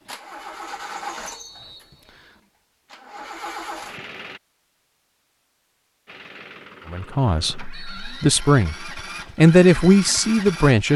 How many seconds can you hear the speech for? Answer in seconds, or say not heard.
4 s.